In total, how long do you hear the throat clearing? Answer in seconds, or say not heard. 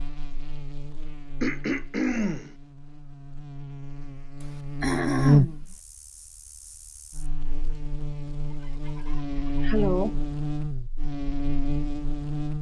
4 s.